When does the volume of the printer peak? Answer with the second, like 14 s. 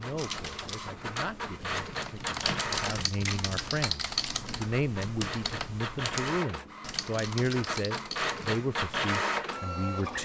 9 s.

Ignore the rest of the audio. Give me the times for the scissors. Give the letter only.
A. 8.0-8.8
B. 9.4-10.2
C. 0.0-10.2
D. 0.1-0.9
D.